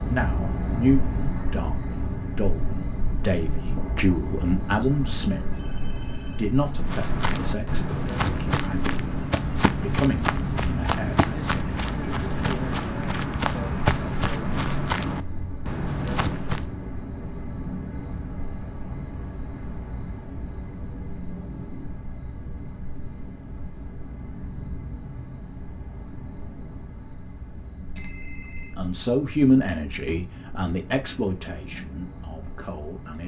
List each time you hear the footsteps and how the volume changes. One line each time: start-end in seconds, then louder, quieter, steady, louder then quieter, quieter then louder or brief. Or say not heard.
6.7-16.8 steady.